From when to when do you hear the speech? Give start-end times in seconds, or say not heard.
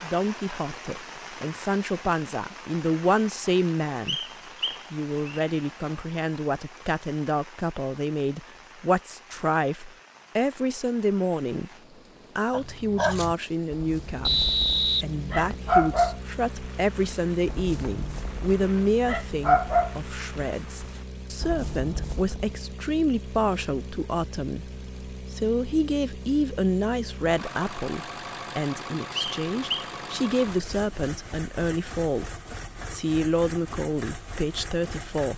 0.0-4.2, 4.9-11.7, 12.3-24.7, 25.3-32.3, 32.9-35.3.